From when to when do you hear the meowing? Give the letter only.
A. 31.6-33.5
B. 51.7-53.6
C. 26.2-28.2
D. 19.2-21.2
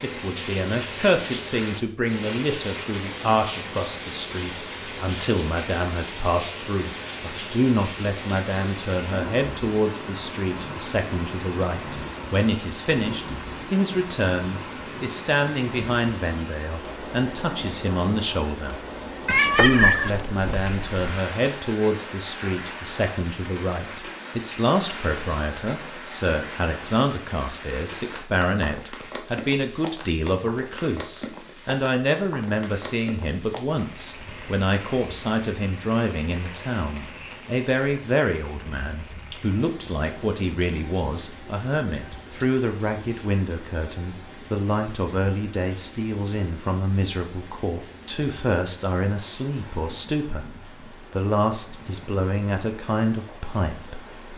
D.